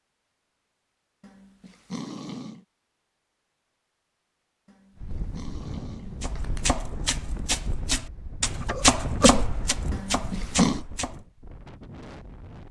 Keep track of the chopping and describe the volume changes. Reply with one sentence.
The loudness of the chopping goes up, then down.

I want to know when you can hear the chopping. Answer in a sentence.
The chopping can be heard from 6.2 to 11.2 s.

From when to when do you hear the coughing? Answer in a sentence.
You can hear the coughing from 8.6 to 9.4 s.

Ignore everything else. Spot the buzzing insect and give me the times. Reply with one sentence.
The buzzing insect can't be heard in this clip.